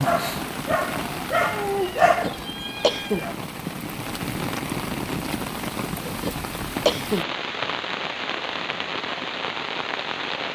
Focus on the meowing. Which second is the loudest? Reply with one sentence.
The volume of the meowing peaks at 2 seconds.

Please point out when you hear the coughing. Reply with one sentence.
The coughing can be heard from 2.0 to 3.2 s and from 6.0 to 7.3 s.